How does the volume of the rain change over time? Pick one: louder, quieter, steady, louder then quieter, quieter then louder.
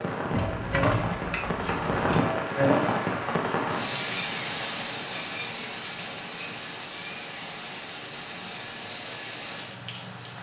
quieter.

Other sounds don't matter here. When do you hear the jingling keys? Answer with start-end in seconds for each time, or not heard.
0.3-2.3.